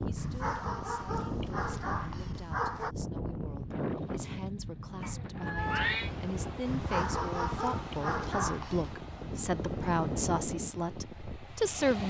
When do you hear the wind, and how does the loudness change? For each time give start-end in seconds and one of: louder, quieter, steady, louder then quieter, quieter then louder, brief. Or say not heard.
0.0-12.0 steady.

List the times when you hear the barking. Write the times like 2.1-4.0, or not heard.
0.1-3.0, 6.7-8.9.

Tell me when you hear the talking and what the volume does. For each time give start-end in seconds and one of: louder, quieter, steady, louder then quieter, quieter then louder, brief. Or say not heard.
0.1-12.0 louder.